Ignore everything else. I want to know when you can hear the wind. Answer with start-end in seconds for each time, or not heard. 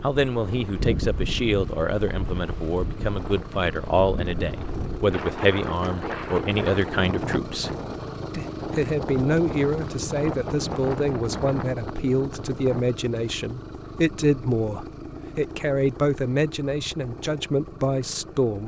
0.0-12.8.